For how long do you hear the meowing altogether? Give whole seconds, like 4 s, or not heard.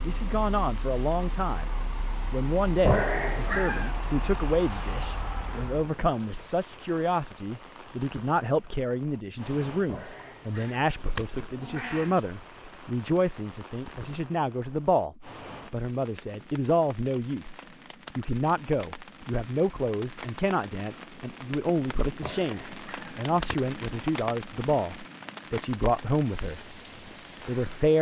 5 s.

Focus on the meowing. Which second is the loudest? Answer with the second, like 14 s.
3 s.